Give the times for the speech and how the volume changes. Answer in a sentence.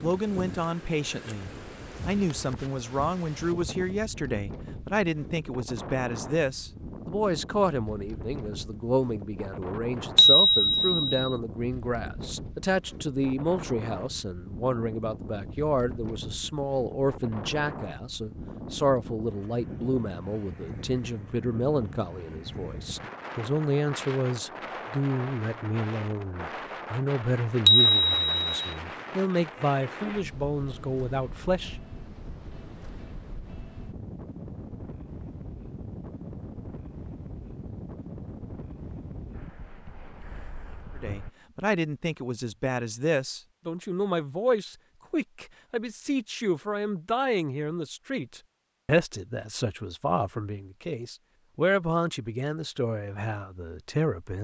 The speech can be heard from 0.0 to 31.8 s, at a steady volume; and from 41.0 to 54.3 s, at a steady volume.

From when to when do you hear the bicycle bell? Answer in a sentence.
You can hear the bicycle bell from 10.2 to 11.2 s and from 27.6 to 28.8 s.